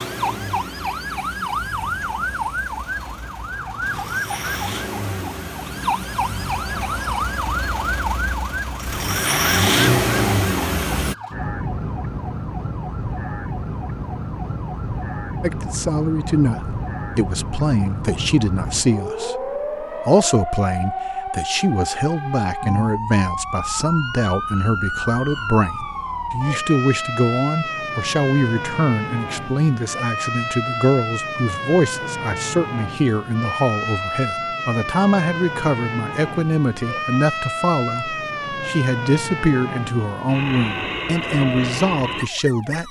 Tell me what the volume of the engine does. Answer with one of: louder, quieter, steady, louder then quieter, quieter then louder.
louder.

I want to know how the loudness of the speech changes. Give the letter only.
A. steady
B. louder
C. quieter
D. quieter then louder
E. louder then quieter
A.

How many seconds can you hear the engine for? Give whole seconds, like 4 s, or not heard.
11 s.